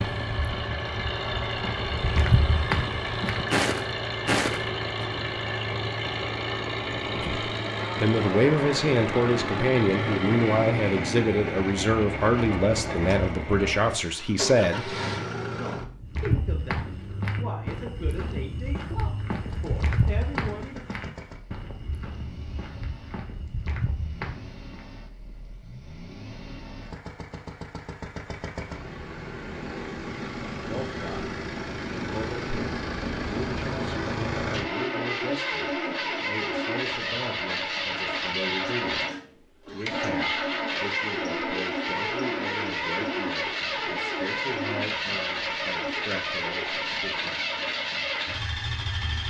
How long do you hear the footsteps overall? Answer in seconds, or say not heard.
14 s.